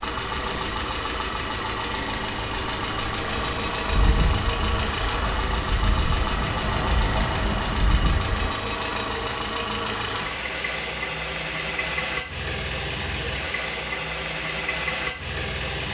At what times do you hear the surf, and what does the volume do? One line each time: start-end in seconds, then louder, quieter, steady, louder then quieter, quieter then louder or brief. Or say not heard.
0.1-8.5 louder.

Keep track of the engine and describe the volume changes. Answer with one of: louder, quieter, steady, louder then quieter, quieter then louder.
steady.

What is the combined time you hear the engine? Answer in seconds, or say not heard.
16 s.